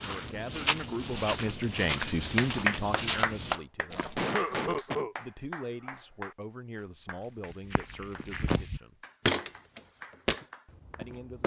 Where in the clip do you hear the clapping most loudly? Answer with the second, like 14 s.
3 s.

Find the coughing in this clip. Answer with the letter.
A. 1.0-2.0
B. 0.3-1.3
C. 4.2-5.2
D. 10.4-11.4
C.